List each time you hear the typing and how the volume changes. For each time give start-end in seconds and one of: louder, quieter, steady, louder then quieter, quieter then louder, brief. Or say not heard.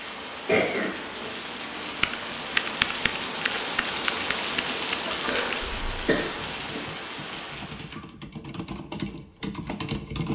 2.0-10.3 quieter then louder.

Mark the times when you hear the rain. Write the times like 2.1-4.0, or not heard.
0.0-8.1.